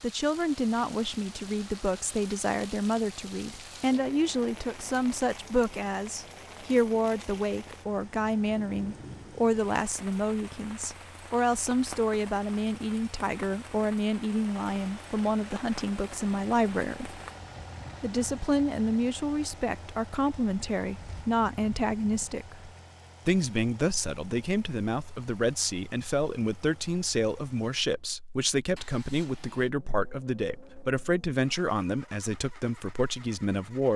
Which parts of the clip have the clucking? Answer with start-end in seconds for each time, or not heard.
not heard.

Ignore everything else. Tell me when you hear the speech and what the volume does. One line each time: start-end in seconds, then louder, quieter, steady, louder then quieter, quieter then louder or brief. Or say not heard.
0.0-17.2 steady
18.0-33.9 steady.